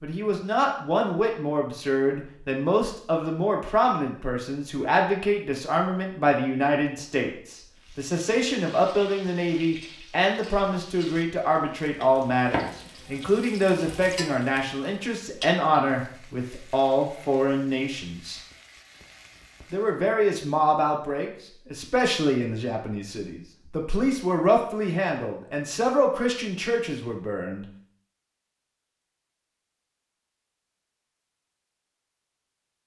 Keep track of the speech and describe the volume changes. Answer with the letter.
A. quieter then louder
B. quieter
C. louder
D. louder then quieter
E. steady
E.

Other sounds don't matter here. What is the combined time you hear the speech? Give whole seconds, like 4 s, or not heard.
26 s.